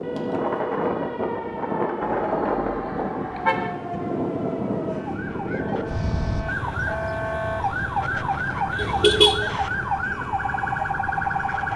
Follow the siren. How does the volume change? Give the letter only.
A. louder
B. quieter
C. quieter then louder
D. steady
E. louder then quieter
A.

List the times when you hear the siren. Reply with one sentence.
The siren can be heard from 0.0 to 11.7 s.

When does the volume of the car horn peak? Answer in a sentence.
The volume of the car horn peaks at 9 seconds.